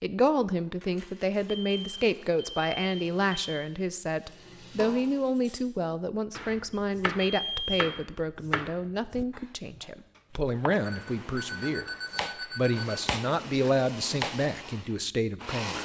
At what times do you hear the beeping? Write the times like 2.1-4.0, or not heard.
1.4-3.5, 6.7-7.8, 10.8-13.0.